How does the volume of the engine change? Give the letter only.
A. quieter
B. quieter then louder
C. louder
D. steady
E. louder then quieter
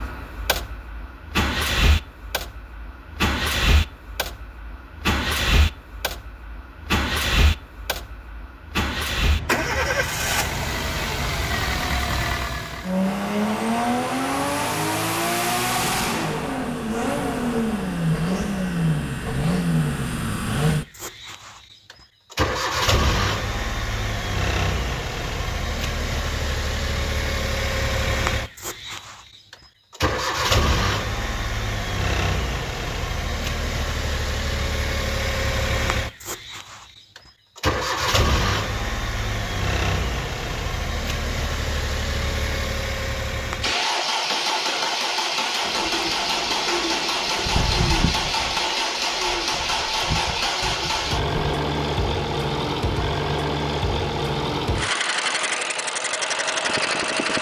D.